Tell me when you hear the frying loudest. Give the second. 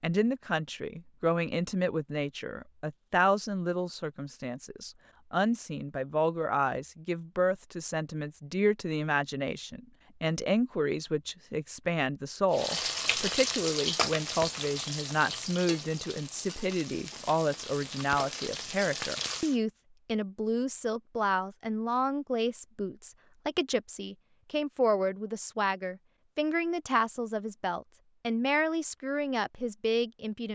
14 s.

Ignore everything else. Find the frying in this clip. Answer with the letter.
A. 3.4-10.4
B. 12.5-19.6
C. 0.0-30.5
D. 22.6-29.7
B.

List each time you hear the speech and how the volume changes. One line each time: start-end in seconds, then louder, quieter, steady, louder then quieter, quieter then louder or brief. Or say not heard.
0.0-30.5 steady.